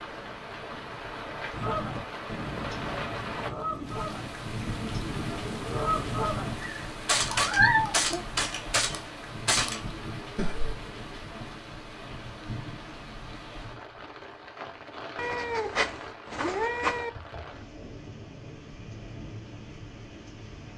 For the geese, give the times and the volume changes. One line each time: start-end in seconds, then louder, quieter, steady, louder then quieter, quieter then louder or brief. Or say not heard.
1.5-10.8 louder.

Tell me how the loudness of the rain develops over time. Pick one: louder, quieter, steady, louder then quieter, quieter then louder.
quieter.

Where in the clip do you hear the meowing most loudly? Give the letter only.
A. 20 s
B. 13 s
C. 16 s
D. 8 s
D.